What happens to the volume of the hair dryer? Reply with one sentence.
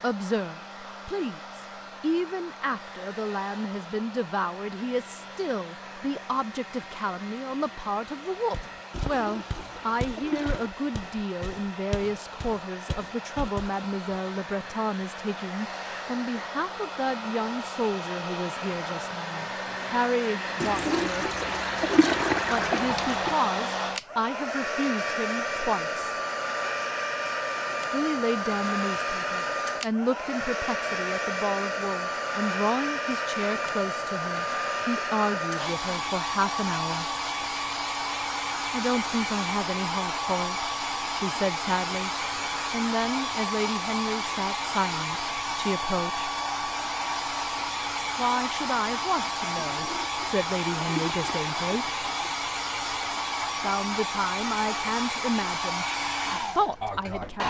The loudness of the hair dryer goes up.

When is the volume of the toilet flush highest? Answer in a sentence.
The loudest moment of the toilet flush is at 22 seconds.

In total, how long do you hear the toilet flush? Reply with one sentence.
You can hear the toilet flush for 7 seconds altogether.